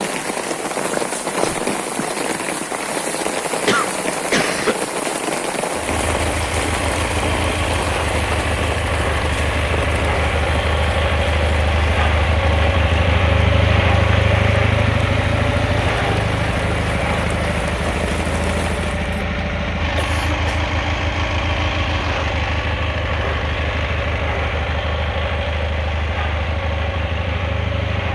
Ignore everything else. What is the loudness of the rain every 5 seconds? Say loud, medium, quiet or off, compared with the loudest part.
loud, loud, medium, medium, off, off.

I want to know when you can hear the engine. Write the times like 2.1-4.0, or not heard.
5.7-28.0.